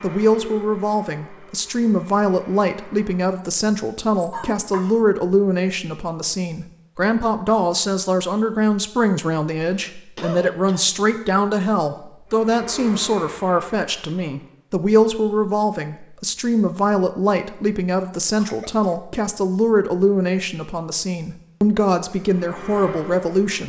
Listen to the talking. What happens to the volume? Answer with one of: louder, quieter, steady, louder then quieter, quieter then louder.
steady.